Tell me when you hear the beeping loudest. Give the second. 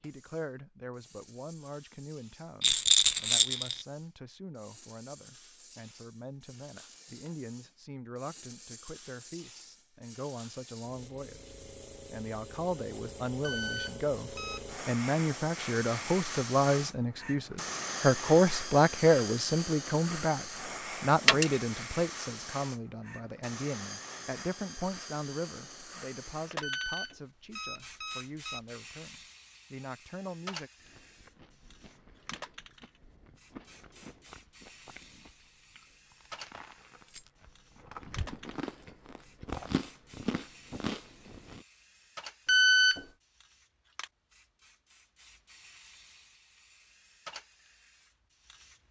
43 s.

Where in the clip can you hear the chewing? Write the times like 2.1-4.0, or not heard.
30.8-41.6.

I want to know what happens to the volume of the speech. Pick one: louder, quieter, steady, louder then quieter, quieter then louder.
louder then quieter.